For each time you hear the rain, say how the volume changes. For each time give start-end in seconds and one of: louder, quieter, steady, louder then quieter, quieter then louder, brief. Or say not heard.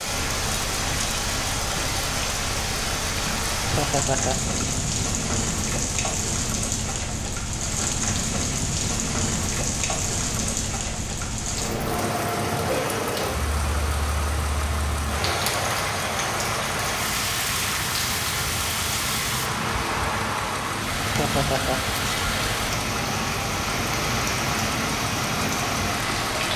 0.0-26.5 steady.